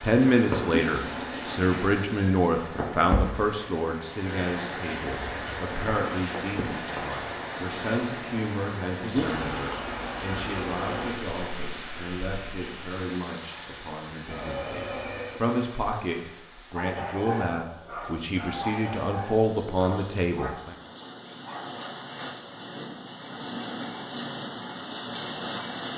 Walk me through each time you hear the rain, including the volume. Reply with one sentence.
The rain can be heard from 0.0 to 25.9 s, getting quieter then louder.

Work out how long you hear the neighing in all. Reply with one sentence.
The neighing can be heard for 3 seconds in total.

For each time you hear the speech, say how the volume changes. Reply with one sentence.
You can hear the speech from 0.0 to 20.8 s, getting quieter then louder.